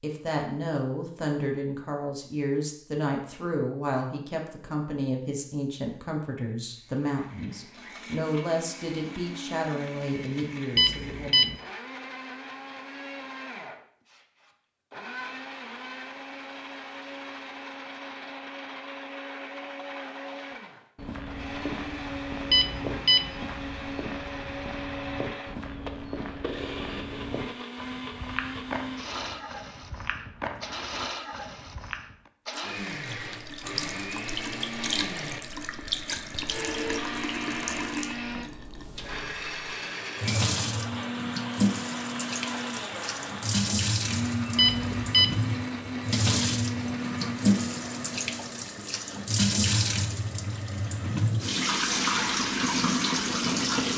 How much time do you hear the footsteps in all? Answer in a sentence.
You can hear the footsteps for 11 seconds altogether.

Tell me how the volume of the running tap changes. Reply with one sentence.
The loudness of the running tap goes up.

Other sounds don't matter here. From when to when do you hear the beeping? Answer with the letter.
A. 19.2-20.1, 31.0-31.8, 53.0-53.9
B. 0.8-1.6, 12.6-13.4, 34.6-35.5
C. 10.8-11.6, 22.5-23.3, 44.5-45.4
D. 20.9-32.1
C.